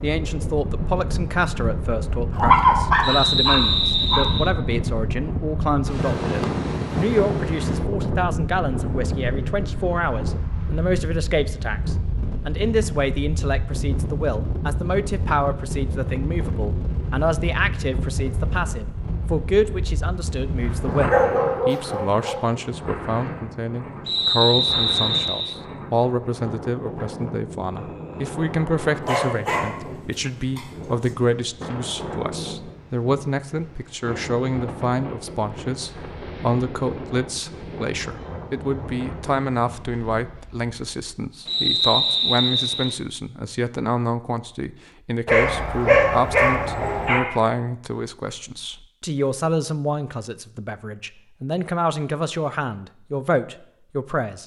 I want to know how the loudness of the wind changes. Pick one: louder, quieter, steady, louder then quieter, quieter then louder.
quieter.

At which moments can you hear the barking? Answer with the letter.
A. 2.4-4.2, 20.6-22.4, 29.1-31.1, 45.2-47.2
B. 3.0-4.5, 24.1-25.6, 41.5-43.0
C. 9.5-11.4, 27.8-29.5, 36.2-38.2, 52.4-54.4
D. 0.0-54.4
A.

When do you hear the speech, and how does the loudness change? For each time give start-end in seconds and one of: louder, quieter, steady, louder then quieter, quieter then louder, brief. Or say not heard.
0.0-54.4 steady.